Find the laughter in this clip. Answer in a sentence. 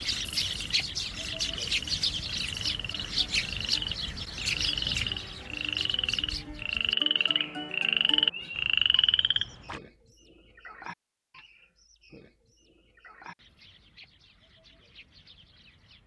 The laughter can't be heard in this clip.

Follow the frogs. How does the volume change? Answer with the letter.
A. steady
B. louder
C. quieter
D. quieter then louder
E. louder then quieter
B.